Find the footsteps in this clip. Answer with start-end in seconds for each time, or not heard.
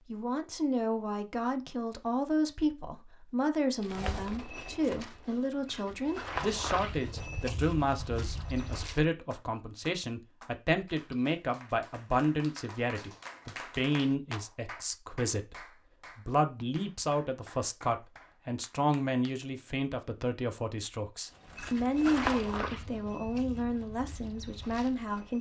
3.8-9.0, 21.4-25.3.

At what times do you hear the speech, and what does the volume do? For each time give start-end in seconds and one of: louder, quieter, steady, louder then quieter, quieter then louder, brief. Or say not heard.
0.1-25.3 steady.